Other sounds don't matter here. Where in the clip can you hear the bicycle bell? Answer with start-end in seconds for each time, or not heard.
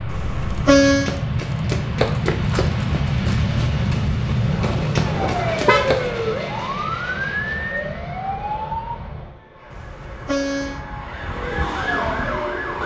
not heard.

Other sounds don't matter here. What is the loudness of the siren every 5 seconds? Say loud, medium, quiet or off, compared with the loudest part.
off, loud, loud.